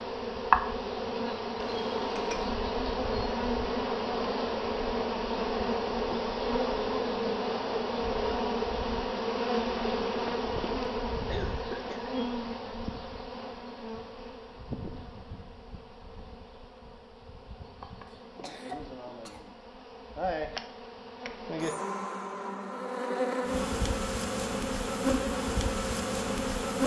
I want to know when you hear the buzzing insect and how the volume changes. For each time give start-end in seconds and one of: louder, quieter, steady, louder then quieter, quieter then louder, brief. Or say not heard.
0.0-26.8 quieter then louder.